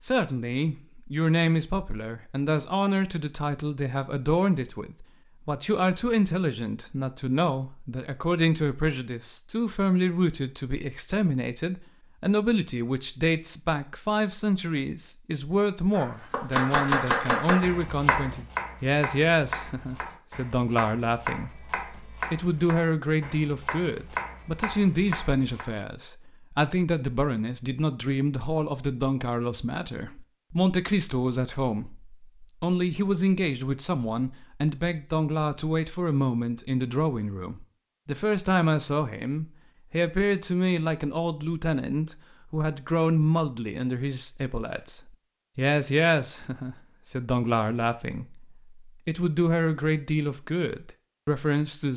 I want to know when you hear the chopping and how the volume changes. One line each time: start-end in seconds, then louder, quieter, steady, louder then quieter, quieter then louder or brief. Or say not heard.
15.9-25.6 quieter.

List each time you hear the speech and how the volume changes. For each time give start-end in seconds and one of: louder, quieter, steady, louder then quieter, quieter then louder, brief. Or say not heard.
0.0-51.9 steady.